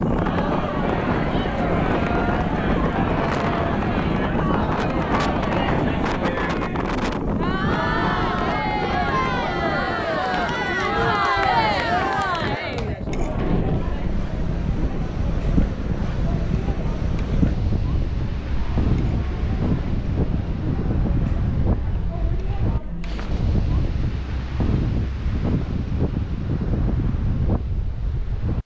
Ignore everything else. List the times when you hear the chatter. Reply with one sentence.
You can hear the chatter from 0.0 to 23.9 s.